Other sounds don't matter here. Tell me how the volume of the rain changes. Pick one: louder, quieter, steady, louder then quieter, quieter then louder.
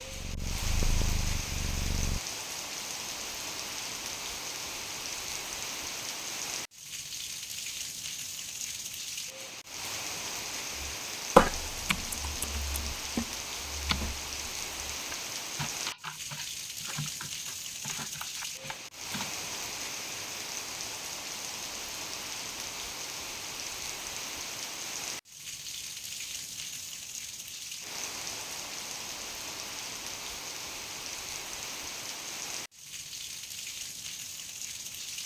steady.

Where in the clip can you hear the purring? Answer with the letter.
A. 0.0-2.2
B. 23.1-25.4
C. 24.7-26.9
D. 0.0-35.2
A.